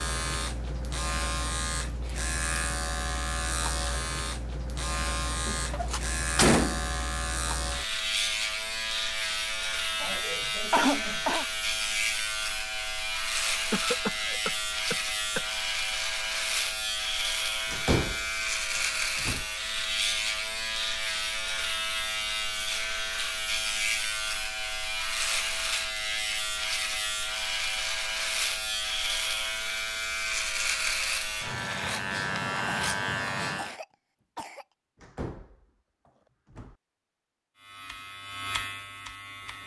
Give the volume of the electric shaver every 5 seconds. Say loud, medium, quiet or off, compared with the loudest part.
loud, loud, loud, loud, loud, loud, loud, medium.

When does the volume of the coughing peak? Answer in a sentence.
The loudest moment of the coughing is at 11 seconds.